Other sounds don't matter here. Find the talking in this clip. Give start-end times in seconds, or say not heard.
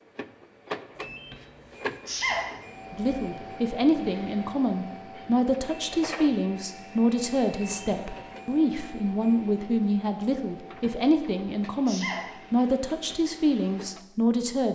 2.9-14.6.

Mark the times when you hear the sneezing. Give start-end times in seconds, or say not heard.
2.0-2.5, 11.8-12.3.